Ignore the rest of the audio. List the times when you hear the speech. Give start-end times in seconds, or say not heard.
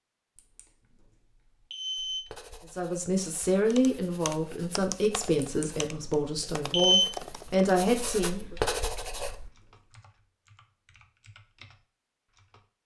2.7-8.6.